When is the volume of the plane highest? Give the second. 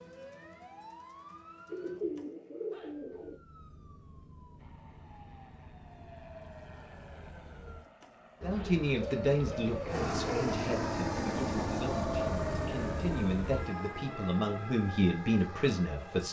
11 s.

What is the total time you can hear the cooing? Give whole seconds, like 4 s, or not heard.
4 s.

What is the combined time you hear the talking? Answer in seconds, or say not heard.
8 s.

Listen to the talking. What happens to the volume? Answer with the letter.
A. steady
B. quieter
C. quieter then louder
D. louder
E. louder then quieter
C.